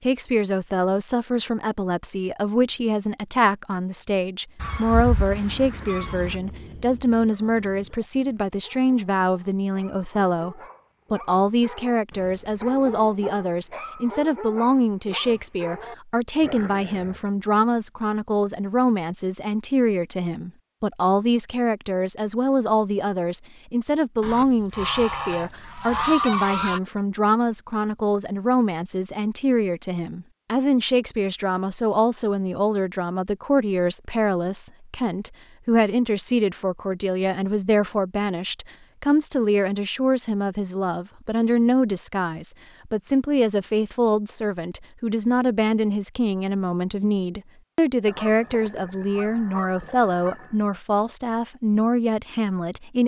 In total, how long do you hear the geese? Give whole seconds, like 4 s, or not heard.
7 s.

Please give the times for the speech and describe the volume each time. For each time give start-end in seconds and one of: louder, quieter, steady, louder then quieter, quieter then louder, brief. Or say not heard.
0.0-53.0 steady.